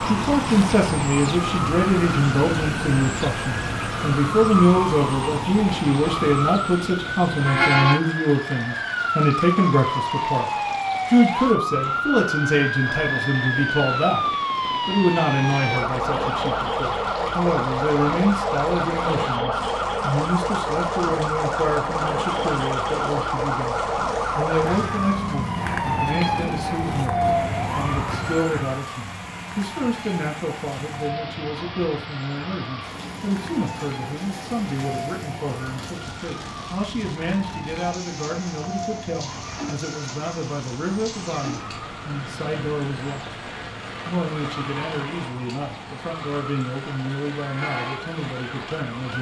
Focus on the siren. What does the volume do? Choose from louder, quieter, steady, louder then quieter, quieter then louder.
quieter.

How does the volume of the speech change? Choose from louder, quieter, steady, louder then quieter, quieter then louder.
quieter.